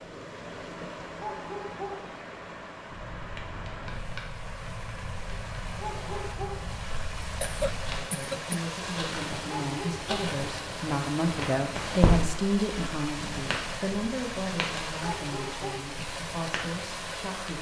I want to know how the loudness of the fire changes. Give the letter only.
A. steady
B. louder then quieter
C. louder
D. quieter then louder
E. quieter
B.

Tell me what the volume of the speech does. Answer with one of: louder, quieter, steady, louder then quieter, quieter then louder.
louder then quieter.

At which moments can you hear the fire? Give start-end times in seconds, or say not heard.
2.9-17.5.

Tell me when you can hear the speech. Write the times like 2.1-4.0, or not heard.
7.8-17.5.